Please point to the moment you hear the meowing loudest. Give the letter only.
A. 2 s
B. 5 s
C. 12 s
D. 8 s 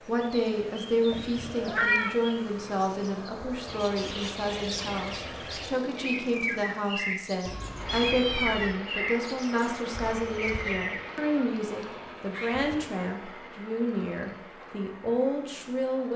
A.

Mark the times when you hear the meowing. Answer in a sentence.
The meowing can be heard from 1.1 to 2.1 s, from 7.5 to 8.8 s and from 11.3 to 12.8 s.